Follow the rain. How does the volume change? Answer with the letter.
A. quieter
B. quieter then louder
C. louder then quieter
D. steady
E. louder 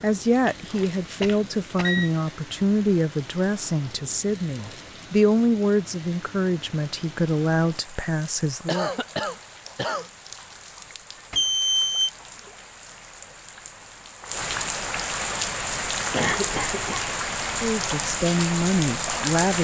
E.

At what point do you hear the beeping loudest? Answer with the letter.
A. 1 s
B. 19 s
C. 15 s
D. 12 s
D.